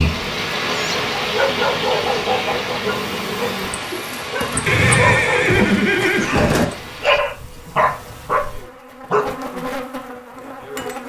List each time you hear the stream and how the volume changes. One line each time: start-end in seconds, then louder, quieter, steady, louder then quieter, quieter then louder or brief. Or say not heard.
0.0-7.1 quieter.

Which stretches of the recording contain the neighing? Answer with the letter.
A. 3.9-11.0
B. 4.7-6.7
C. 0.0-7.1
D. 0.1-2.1
B.